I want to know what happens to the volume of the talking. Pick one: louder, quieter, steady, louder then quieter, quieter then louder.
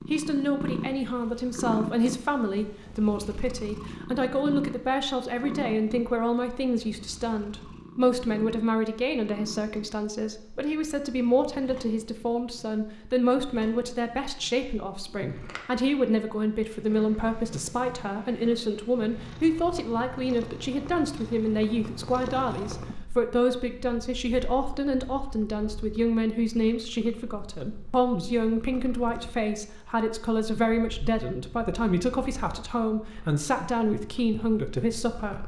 steady.